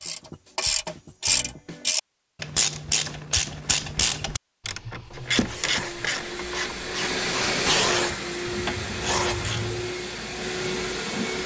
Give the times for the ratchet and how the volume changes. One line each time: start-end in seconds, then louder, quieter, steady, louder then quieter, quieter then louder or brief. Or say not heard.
0.0-9.9 quieter.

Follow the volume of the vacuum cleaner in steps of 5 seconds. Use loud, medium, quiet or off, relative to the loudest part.
off, loud, loud.